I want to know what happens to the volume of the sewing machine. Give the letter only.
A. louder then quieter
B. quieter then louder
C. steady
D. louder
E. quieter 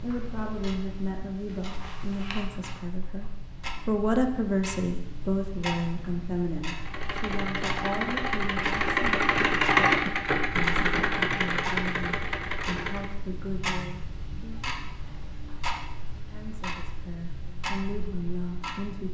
A.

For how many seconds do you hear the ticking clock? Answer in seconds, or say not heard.
19 s.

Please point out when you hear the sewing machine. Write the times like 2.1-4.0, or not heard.
6.8-13.2.